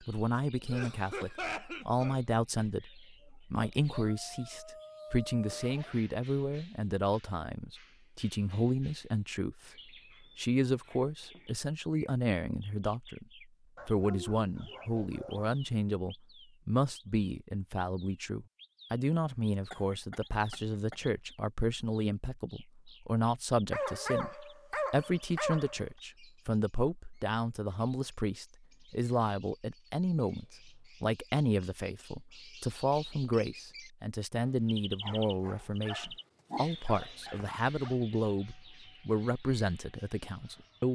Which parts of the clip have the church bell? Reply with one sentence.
You can't hear the church bell here.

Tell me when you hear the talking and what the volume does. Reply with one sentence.
You can hear the talking from 0.0 to 9.7 s, at a steady volume; briefly from 10.3 to 13.2 s; and from 13.8 to 40.8 s, at a steady volume.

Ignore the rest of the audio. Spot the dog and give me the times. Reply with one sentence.
The dog can be heard from 3.5 to 6.0 s, from 13.8 to 15.6 s, from 23.7 to 25.9 s and from 35.0 to 38.0 s.